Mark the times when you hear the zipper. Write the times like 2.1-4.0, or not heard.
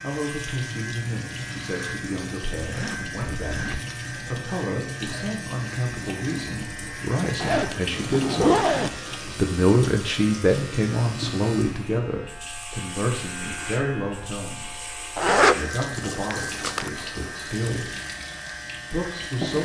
2.6-3.9, 7.3-8.9, 15.2-16.9.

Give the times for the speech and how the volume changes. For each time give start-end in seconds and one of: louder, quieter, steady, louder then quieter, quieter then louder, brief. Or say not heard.
0.0-17.9 louder then quieter
18.9-19.6 brief.